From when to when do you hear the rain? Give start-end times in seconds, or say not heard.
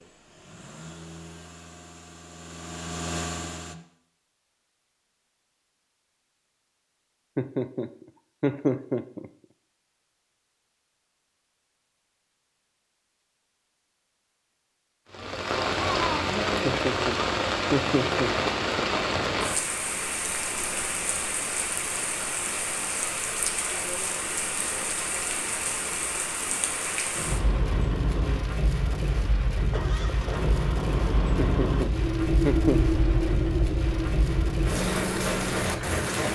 15.1-36.2.